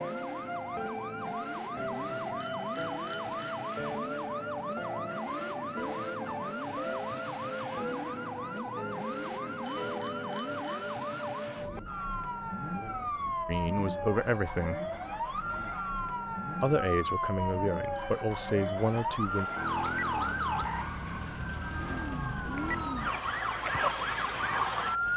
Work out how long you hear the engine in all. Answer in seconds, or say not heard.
25 s.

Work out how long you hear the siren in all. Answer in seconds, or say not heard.
25 s.